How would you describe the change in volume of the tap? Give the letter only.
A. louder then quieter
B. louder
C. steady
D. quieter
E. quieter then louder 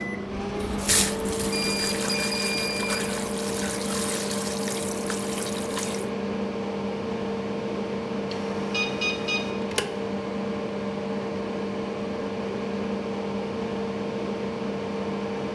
D.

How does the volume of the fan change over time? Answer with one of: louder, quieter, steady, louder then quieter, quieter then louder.
steady.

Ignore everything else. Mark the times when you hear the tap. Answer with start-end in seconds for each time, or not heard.
0.0-6.0.